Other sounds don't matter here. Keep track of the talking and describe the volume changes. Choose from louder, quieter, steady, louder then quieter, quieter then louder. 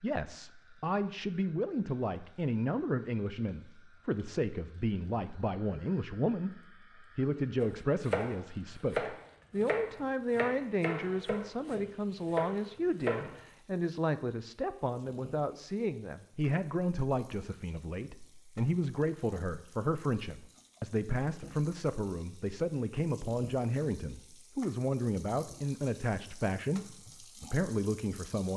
steady.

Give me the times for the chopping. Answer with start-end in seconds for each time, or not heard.
7.6-13.4.